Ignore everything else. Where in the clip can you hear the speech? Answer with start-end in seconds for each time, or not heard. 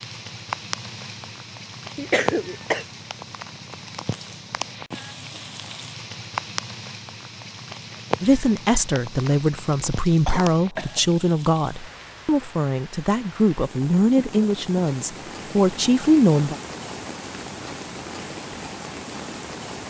8.2-16.6.